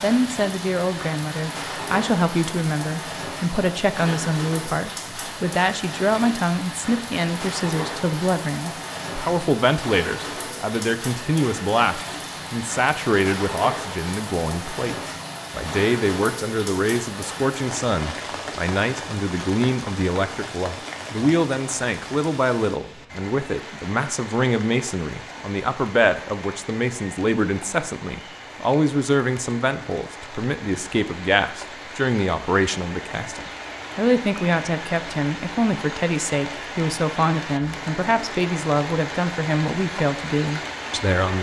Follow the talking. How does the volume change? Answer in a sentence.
The loudness of the talking stays about the same.